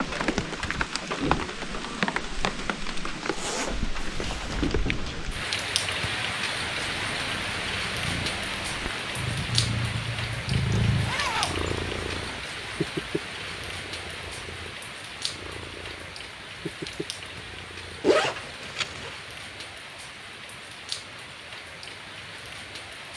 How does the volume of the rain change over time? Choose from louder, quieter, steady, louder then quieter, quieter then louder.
quieter.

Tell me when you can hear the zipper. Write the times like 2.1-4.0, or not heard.
3.2-4.7, 10.7-12.4, 18.0-19.1.